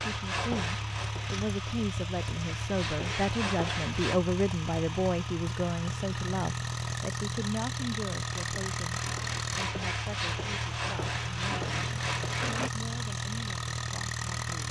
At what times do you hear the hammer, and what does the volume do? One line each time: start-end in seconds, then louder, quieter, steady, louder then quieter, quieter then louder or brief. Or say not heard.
not heard.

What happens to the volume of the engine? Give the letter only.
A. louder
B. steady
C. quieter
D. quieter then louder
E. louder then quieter
B.